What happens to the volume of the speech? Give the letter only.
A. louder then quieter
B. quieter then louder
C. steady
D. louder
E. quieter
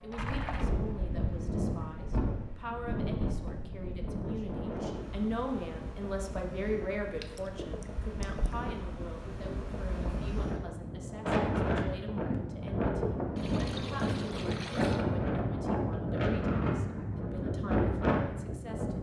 A.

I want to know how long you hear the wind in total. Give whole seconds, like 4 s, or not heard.
19 s.